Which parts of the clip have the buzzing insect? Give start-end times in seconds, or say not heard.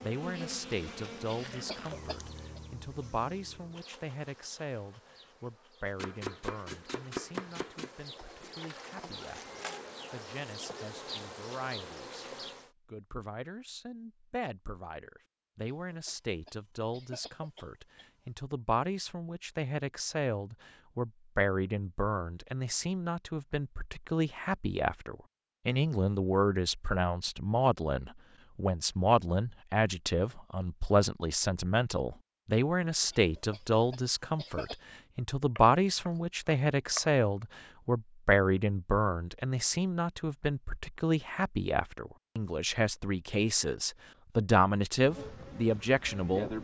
0.0-12.7, 45.0-46.5.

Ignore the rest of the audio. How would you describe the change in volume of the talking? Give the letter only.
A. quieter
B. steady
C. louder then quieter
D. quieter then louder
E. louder
E.